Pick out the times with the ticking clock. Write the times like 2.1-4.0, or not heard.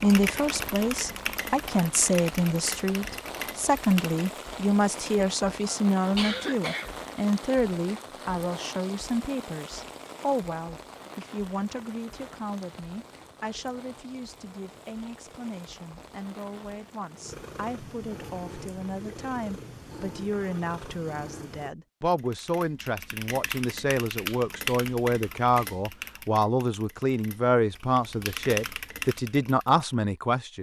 not heard.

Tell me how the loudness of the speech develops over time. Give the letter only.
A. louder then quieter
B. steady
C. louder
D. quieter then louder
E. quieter
D.